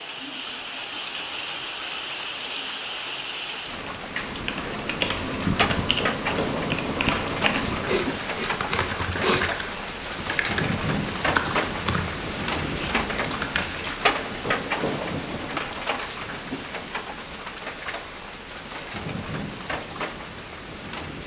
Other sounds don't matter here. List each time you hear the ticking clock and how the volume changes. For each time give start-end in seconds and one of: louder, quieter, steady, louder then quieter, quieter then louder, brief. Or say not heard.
not heard.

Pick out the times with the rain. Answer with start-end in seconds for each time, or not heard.
0.0-21.2.